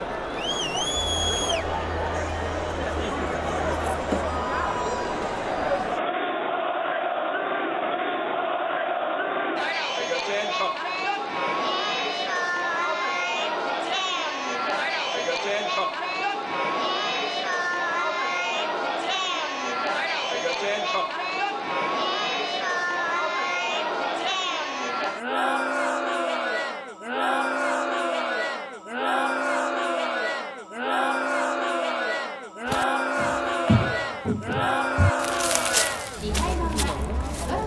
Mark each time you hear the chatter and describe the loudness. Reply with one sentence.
You can hear the chatter from 0.0 to 37.6 s, at a steady volume.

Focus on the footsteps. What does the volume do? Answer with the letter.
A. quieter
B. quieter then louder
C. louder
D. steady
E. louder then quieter
A.